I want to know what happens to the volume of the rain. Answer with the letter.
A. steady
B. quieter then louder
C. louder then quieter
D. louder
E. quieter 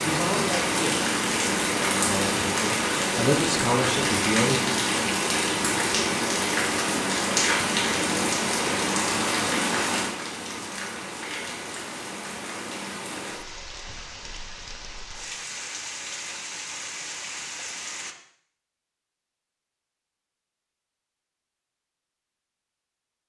E.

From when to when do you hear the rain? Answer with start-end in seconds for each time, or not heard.
0.0-18.1.